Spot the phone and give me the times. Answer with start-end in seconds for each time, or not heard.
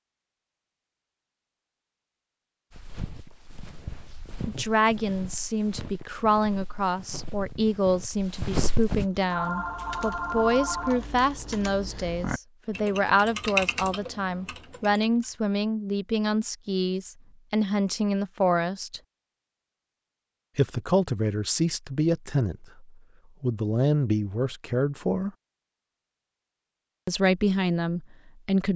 9.3-11.1.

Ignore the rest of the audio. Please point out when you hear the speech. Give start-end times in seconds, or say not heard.
4.5-19.0, 20.6-25.3, 27.1-28.7.